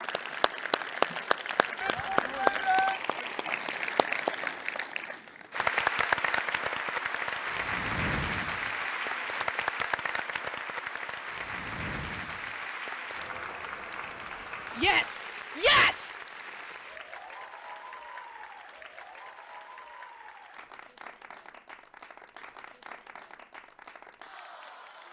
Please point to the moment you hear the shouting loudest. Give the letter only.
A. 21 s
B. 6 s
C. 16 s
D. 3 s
C.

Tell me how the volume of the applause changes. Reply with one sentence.
The loudness of the applause goes down.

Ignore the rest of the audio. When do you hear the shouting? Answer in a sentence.
You can hear the shouting from 1.8 to 3.0 s and from 14.8 to 16.1 s.